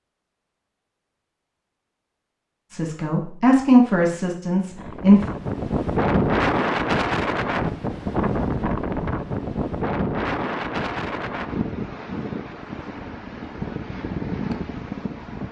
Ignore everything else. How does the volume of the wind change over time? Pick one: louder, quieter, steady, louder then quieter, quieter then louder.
quieter.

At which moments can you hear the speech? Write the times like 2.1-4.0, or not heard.
2.7-5.3.